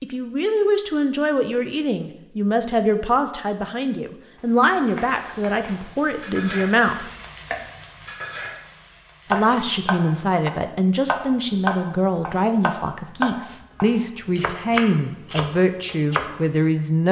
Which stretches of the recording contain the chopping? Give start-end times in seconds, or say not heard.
9.3-16.3.